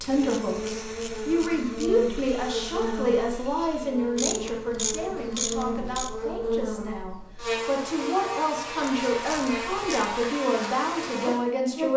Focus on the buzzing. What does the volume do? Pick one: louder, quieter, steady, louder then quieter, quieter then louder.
steady.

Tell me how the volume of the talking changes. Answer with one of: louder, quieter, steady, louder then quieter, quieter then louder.
quieter then louder.